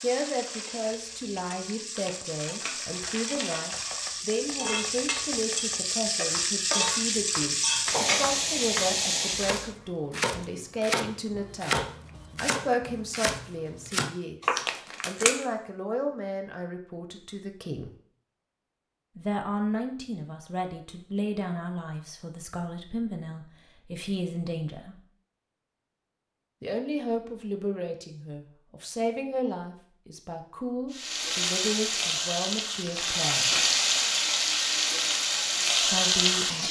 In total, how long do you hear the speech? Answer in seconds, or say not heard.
31 s.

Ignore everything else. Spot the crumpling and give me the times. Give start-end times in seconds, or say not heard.
1.9-3.8, 14.6-15.3, 32.9-33.8.